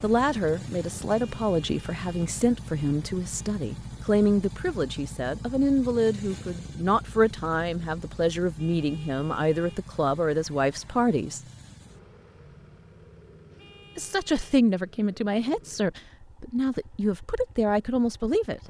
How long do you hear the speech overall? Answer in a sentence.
You can hear the speech for 16 seconds altogether.